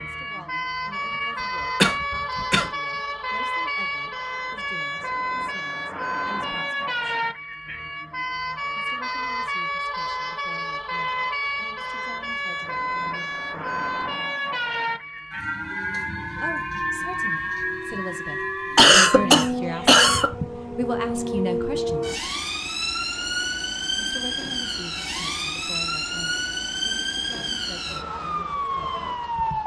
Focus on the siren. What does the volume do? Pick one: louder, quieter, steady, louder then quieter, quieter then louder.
steady.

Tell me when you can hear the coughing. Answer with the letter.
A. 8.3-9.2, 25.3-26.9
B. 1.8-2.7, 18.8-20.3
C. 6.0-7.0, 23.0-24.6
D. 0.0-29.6
B.